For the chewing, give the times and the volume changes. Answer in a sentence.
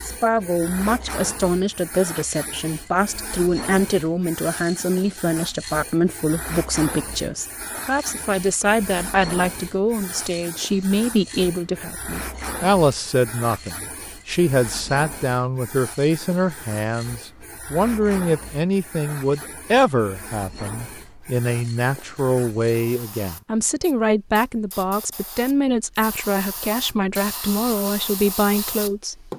You can't hear the chewing here.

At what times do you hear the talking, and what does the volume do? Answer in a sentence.
The talking can be heard from 0.0 to 29.3 s, at a steady volume.